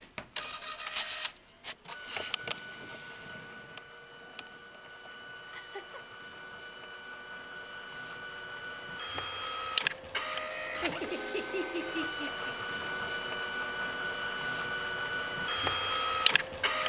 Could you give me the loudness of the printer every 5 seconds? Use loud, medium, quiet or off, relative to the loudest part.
quiet, medium, medium, loud.